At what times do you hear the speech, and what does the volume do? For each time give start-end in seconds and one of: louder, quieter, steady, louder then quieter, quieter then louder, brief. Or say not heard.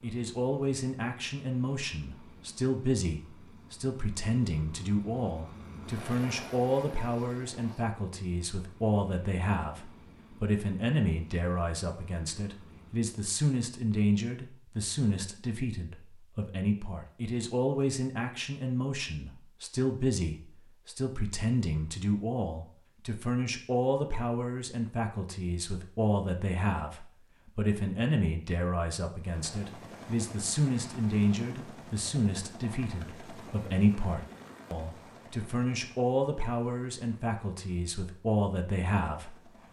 0.0-39.4 steady.